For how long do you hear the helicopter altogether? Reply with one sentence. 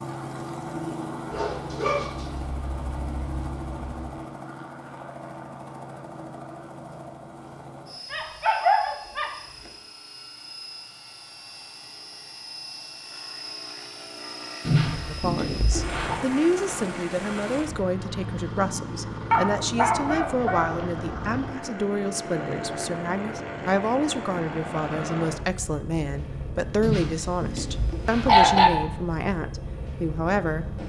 You can hear the helicopter for 31 seconds altogether.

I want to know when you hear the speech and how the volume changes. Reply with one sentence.
You can hear the speech from 15.1 to 30.8 s, at a steady volume.